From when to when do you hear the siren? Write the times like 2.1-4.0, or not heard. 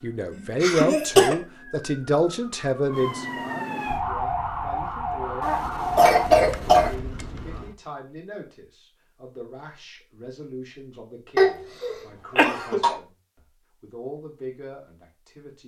0.0-7.8.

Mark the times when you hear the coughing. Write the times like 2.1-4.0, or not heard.
0.3-1.4, 5.4-7.0, 11.3-12.9.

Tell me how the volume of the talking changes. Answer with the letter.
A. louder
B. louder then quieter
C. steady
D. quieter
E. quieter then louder
D.